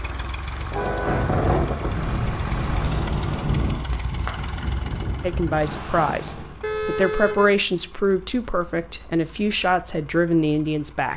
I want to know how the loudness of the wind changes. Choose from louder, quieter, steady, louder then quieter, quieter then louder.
quieter.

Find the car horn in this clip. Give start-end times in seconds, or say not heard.
0.7-1.2, 6.6-7.5.